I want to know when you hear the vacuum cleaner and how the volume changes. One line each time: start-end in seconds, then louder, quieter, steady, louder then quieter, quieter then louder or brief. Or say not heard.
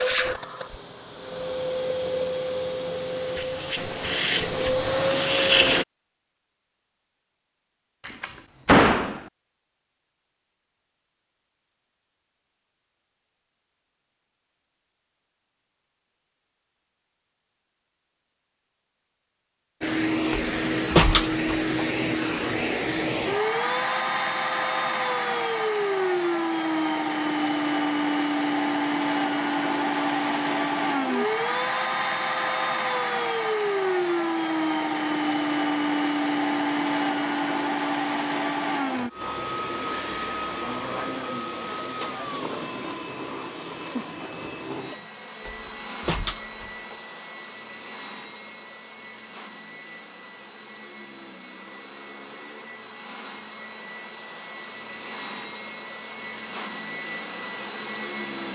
0.0-5.8 louder
19.8-58.5 quieter.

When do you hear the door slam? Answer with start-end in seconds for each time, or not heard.
8.1-9.2, 20.3-21.9, 45.5-47.0.